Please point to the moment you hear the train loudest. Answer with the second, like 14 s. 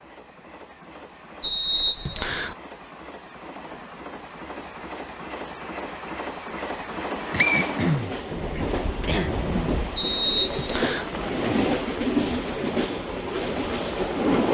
12 s.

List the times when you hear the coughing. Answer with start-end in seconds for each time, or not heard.
7.3-9.4.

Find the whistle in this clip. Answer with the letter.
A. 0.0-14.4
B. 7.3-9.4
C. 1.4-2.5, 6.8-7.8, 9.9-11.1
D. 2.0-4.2
C.